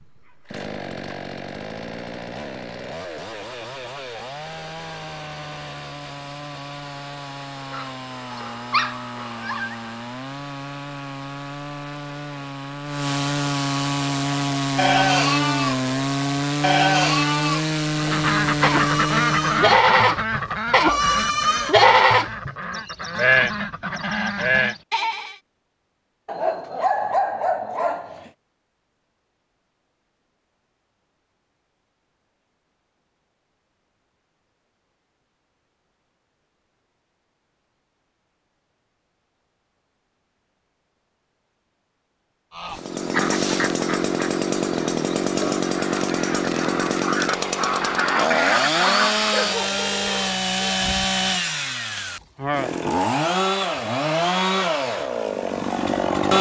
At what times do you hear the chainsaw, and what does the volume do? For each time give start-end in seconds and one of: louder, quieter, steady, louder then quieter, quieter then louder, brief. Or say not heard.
0.0-19.9 louder
42.7-56.3 steady.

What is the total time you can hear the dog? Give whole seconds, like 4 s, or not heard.
6 s.